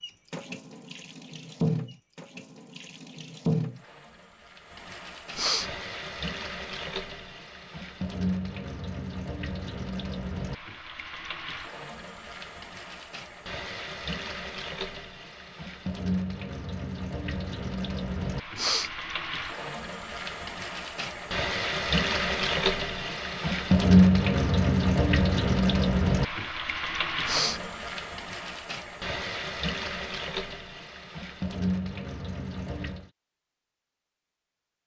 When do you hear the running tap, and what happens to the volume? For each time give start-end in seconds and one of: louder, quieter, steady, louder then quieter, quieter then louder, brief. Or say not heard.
0.0-33.1 louder then quieter.